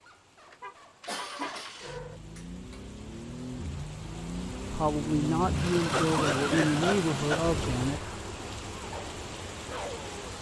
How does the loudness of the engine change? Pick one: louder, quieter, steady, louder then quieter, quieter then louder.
louder then quieter.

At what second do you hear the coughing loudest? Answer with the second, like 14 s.
6 s.